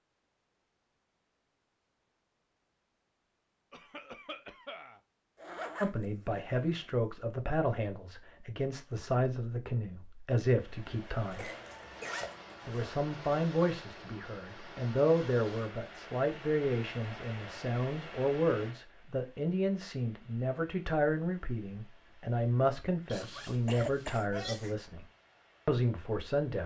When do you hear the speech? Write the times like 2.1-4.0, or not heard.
5.8-11.4, 12.7-25.1, 25.6-26.6.